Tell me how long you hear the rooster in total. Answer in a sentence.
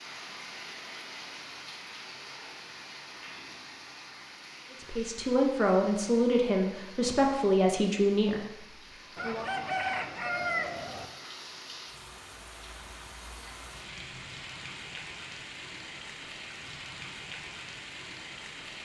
The rooster can be heard for 2 seconds in total.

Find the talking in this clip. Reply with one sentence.
You can hear the talking from 4.7 to 9.4 s.